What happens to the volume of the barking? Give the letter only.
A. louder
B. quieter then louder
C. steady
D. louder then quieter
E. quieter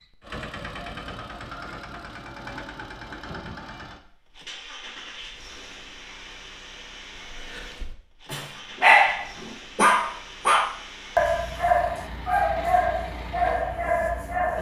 E.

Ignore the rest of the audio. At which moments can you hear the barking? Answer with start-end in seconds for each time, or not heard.
7.3-14.5.